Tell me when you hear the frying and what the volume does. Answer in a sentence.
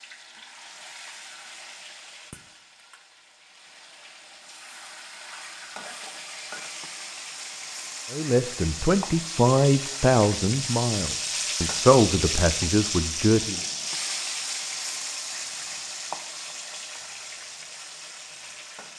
You can hear the frying from 0.0 to 18.9 s, getting louder then quieter.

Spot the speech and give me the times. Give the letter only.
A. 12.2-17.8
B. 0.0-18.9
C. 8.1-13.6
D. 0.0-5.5
C.